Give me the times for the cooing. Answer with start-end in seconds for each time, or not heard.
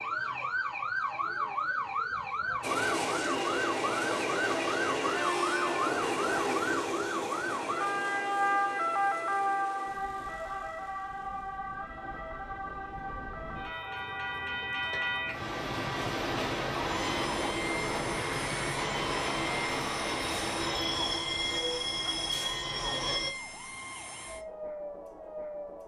not heard.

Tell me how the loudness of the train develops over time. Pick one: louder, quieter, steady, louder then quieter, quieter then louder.
quieter then louder.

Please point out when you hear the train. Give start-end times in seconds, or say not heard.
2.6-23.3.